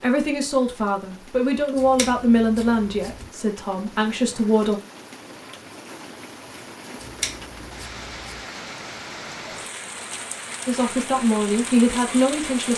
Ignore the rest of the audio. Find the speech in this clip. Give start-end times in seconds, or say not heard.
0.0-4.8, 10.7-12.7.